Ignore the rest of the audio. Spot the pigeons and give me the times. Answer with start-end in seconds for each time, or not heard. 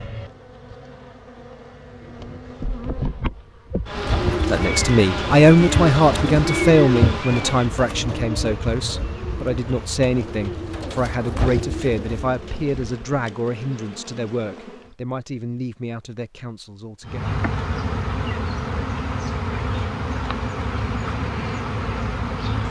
4.0-12.7.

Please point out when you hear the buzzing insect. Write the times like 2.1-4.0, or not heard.
0.0-14.9, 17.1-22.6.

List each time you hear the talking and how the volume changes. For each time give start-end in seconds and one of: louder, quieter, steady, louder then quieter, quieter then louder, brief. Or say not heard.
4.5-17.2 quieter.